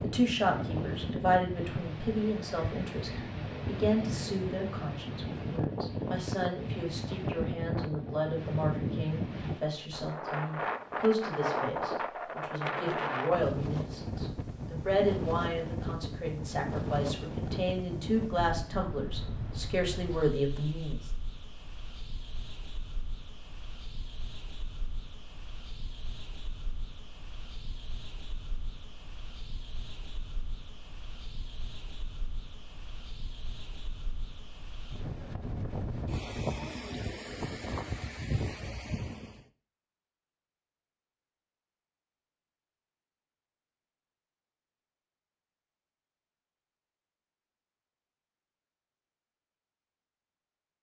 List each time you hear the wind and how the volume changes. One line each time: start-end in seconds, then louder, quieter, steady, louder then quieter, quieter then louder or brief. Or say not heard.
0.0-39.5 quieter then louder.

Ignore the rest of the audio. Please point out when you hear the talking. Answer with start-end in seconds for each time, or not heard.
0.0-21.1.